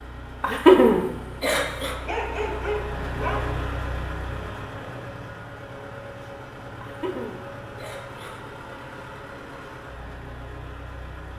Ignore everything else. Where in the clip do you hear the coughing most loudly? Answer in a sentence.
The loudest moment of the coughing is at 1 second.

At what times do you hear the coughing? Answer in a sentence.
The coughing can be heard from 0.4 to 1.9 s and from 6.8 to 8.4 s.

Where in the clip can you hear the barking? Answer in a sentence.
You can hear the barking from 2.0 to 3.5 s.